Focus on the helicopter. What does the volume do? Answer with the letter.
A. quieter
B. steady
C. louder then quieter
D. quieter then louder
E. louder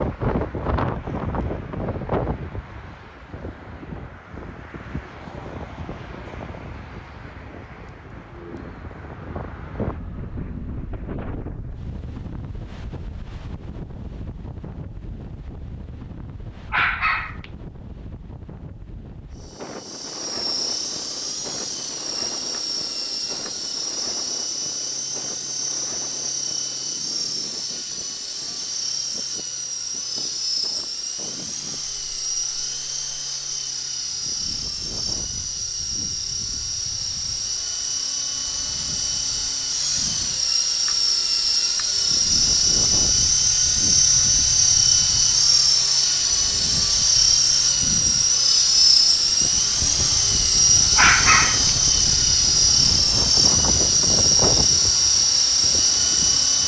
E.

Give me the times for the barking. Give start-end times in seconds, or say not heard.
16.7-17.5, 51.0-51.8.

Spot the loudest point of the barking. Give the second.
51 s.